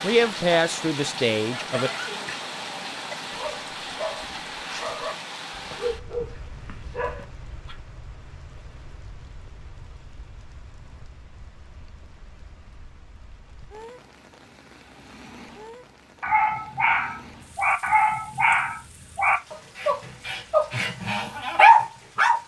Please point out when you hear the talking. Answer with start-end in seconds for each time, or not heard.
0.0-1.9.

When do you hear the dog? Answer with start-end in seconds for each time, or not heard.
1.4-7.8, 16.2-22.4.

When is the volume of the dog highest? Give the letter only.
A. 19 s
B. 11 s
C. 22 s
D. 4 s
C.